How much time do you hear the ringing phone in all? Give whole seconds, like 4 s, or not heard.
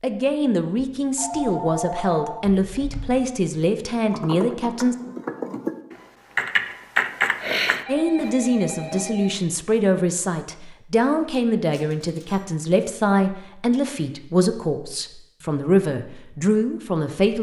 4 s.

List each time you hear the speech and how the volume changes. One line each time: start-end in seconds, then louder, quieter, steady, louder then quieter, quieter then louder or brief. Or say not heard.
0.0-5.0 steady
7.8-17.3 steady.